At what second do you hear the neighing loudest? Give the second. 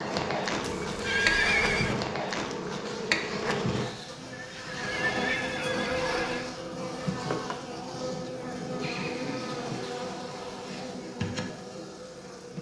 1 s.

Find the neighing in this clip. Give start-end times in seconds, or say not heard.
0.6-1.9, 4.3-6.5, 8.8-9.7.